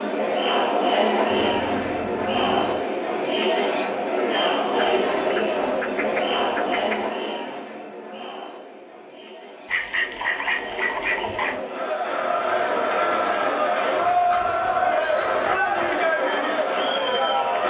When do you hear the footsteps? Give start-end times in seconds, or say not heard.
not heard.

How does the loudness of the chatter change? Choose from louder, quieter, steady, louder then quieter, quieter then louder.
quieter then louder.